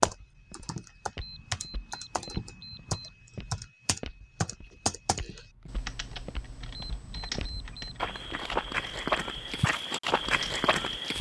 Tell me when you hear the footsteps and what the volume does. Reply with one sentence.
You can hear the footsteps from 0.0 to 11.1 s, getting louder.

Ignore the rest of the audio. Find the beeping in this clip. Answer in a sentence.
You can hear the beeping from 1.1 to 3.1 s and from 6.7 to 8.2 s.